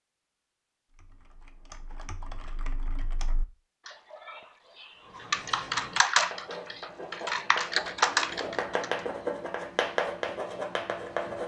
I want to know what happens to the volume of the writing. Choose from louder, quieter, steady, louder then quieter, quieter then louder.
louder.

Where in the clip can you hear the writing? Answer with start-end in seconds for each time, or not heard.
5.0-11.4.